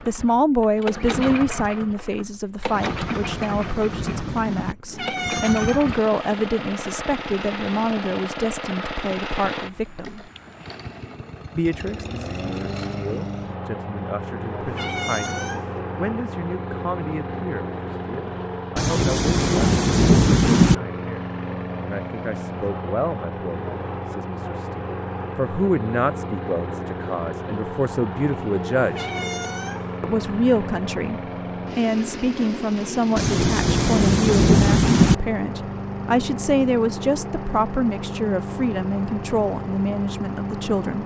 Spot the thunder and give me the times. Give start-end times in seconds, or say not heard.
2.7-4.8, 18.8-20.8, 33.1-35.1.